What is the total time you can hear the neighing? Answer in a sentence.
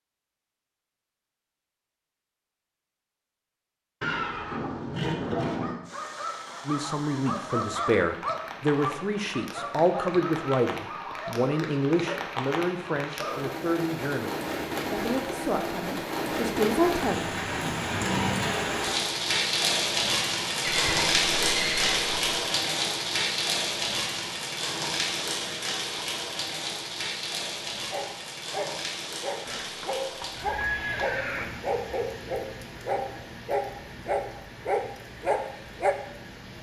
The neighing can be heard for 5 seconds in total.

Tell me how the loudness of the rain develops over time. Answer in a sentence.
The loudness of the rain goes up, then down.